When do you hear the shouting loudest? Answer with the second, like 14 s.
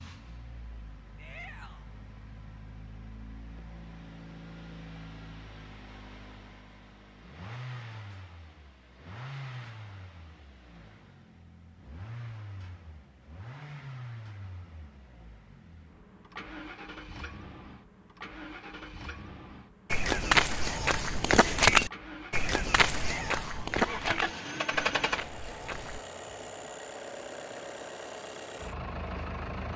23 s.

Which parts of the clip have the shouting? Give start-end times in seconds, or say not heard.
1.1-1.9, 22.9-23.8.